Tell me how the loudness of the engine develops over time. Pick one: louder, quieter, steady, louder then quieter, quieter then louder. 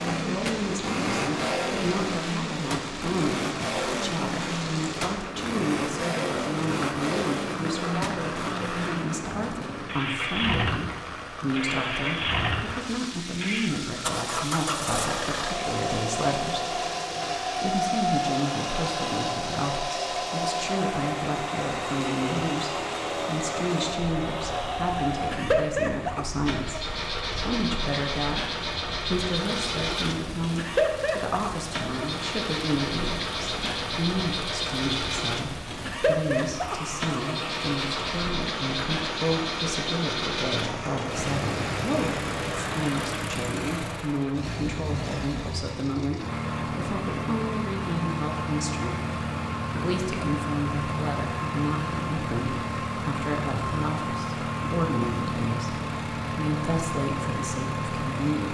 steady.